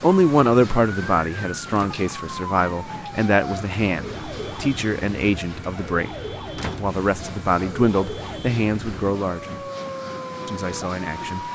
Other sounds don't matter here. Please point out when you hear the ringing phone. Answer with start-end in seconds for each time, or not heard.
not heard.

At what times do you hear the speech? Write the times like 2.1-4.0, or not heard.
0.0-6.2, 6.8-9.6, 10.4-11.4.